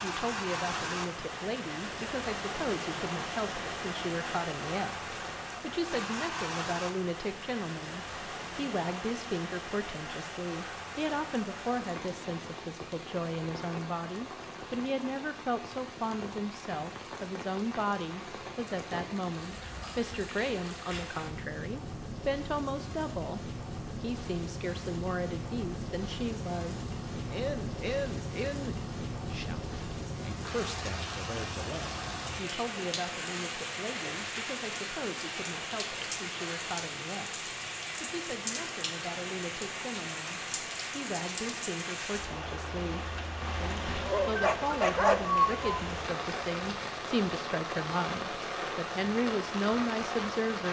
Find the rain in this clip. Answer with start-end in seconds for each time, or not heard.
0.0-50.6.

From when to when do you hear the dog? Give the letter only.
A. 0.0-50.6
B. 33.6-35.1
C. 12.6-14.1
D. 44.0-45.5
D.